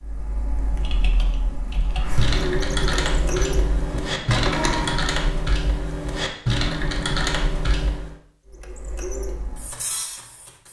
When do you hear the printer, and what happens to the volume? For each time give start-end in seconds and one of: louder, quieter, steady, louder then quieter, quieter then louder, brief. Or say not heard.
0.0-5.0 louder
8.4-10.6 brief.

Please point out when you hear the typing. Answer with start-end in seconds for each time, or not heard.
0.8-8.2.